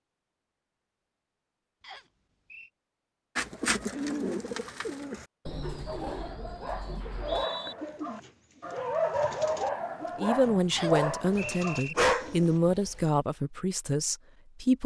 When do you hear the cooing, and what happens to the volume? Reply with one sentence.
You can hear the cooing from 3.4 to 12.6 s, getting quieter.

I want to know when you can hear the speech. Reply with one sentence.
You can hear the speech from 10.2 to 14.8 s.